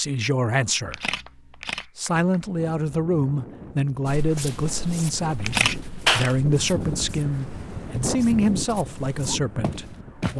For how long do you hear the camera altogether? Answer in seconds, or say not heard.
2 s.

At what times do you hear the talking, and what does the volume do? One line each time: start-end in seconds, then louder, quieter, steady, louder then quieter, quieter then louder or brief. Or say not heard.
0.0-1.1 brief
1.9-10.3 steady.